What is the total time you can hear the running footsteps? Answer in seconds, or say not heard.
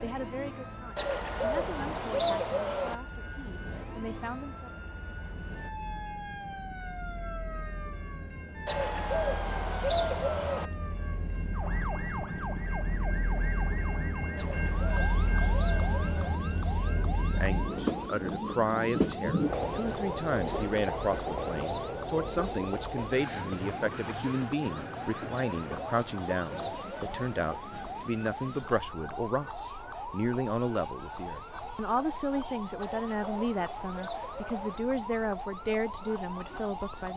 not heard.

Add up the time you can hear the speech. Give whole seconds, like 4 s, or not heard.
25 s.